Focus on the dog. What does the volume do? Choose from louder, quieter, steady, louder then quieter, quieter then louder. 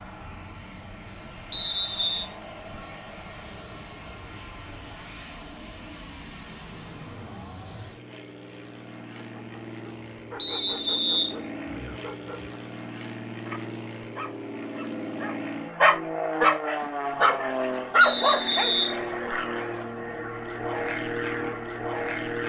louder.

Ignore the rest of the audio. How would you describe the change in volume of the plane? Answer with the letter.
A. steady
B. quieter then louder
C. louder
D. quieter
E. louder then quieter
C.